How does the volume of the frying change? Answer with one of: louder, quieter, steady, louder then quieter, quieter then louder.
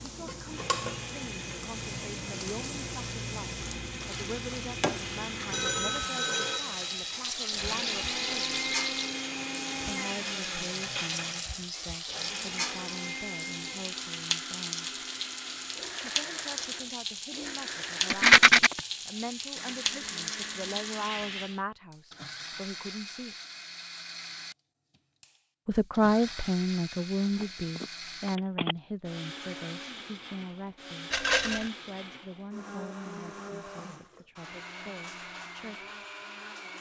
steady.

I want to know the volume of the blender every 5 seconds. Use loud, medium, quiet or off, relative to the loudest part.
medium, loud, loud, medium, medium, medium, medium, medium.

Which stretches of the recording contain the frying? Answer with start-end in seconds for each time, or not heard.
0.0-21.6.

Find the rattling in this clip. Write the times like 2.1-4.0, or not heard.
7.3-9.2, 18.1-18.7, 31.1-31.7.